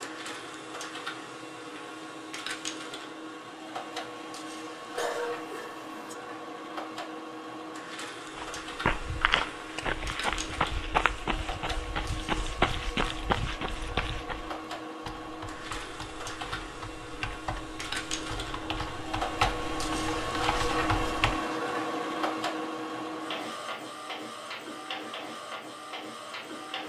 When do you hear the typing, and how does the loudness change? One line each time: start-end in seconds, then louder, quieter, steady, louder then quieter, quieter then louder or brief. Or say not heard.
14.4-21.4 louder.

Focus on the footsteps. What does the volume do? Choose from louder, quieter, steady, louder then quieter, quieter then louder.
steady.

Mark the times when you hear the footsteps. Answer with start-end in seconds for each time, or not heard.
8.3-14.5.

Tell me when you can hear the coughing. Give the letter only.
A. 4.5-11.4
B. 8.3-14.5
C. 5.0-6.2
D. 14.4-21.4
C.